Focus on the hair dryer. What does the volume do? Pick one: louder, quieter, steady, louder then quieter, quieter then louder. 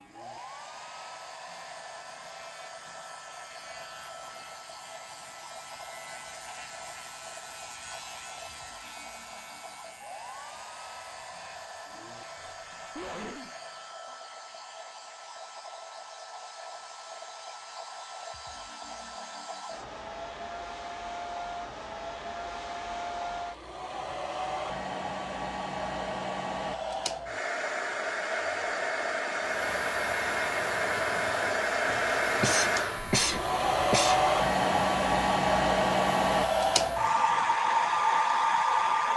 louder.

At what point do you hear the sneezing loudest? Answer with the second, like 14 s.
33 s.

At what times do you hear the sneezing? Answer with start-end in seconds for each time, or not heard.
12.3-13.6, 31.9-34.2.